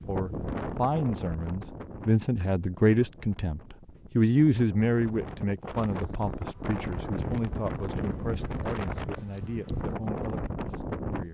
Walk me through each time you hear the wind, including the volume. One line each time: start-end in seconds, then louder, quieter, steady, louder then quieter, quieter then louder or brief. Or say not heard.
0.0-11.2 quieter then louder.